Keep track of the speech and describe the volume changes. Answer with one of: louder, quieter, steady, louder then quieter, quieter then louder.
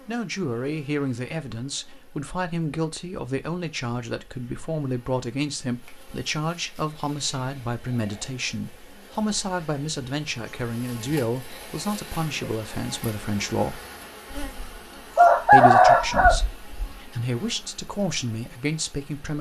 steady.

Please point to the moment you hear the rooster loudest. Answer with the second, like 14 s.
16 s.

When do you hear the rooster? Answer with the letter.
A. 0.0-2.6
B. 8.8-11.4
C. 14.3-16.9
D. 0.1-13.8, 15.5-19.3
C.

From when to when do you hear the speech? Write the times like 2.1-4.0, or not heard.
0.1-13.8, 15.5-19.3.